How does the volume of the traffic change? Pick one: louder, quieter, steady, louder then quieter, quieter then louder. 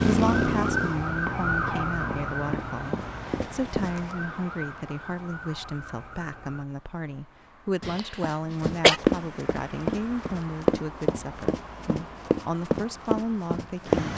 quieter then louder.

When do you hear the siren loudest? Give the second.
1 s.